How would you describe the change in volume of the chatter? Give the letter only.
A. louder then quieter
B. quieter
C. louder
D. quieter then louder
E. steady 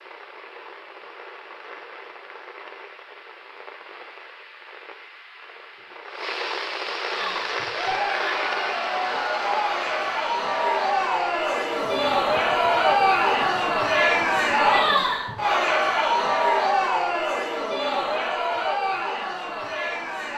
A.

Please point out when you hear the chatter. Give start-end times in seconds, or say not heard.
7.1-20.3.